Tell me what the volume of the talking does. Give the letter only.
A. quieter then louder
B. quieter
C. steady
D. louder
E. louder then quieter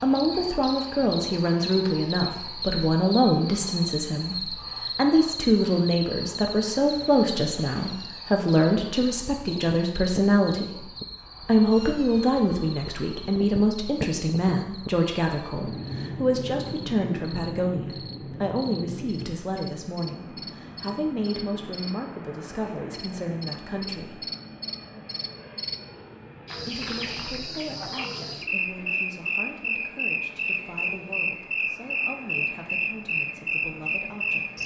B.